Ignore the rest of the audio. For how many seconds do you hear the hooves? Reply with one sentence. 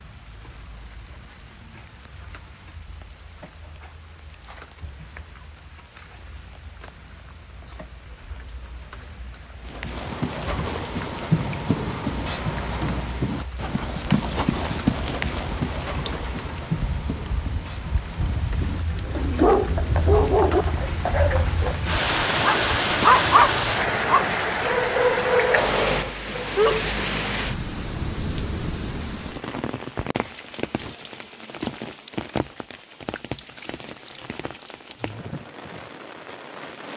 You can hear the hooves for 12 seconds altogether.